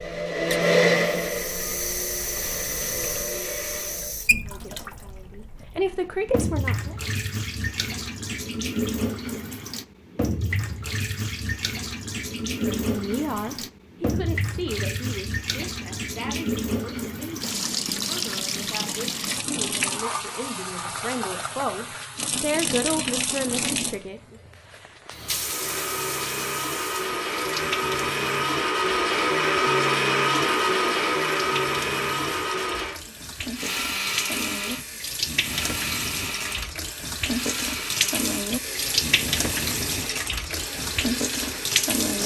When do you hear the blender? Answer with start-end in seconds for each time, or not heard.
0.0-4.2, 25.2-42.2.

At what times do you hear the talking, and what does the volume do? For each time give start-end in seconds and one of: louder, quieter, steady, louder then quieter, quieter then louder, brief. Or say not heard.
4.5-7.0 brief
12.6-24.4 quieter then louder.